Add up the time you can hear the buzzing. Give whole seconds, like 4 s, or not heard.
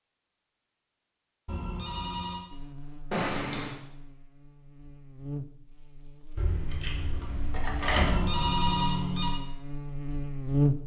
8 s.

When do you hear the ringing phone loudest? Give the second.
9 s.